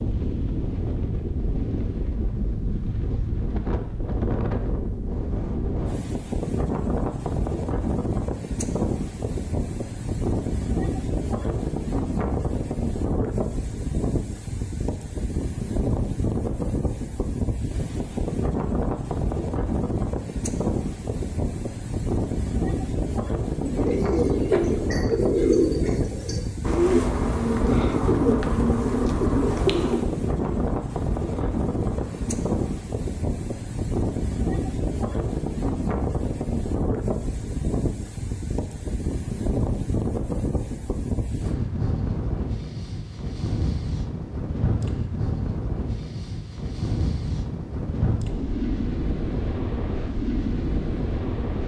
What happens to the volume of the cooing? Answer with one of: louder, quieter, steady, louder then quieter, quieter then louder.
quieter.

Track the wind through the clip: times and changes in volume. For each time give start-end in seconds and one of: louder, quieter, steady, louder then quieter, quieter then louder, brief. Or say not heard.
0.0-51.6 steady.